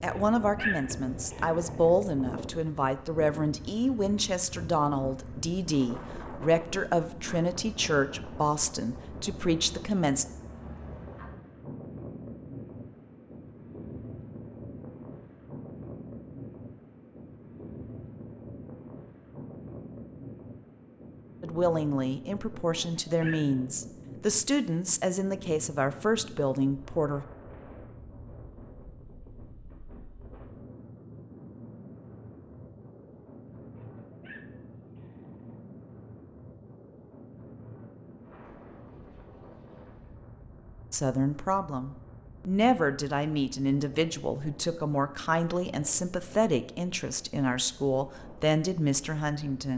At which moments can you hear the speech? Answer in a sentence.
You can hear the speech from 0.0 to 10.2 s, from 21.4 to 27.2 s and from 40.9 to 49.7 s.